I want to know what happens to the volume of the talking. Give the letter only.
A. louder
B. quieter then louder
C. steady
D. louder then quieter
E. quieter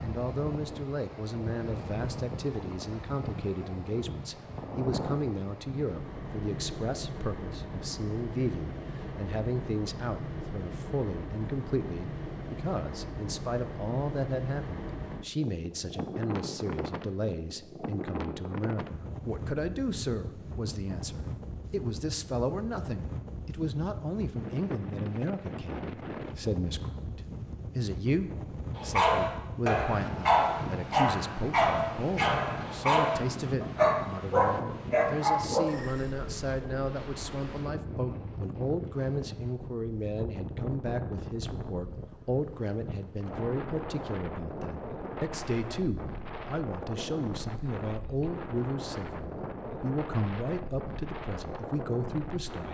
C.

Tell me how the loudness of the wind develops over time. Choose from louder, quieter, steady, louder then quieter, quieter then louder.
steady.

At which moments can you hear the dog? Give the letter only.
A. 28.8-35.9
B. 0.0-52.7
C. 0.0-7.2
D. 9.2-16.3
A.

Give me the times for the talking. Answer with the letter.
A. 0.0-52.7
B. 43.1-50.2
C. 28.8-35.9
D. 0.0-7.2
A.